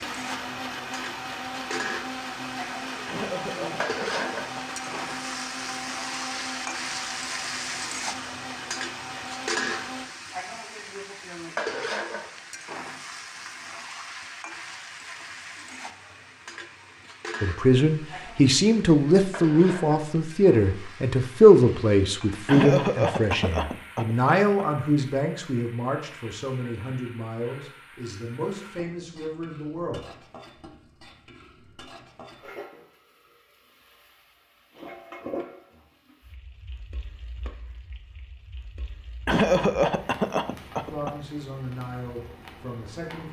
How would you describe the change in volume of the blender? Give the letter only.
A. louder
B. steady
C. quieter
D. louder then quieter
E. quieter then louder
B.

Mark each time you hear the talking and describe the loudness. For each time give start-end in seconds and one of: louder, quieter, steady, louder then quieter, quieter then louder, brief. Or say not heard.
17.4-30.1 quieter
40.9-43.2 brief.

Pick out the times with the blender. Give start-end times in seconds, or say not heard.
0.0-10.1.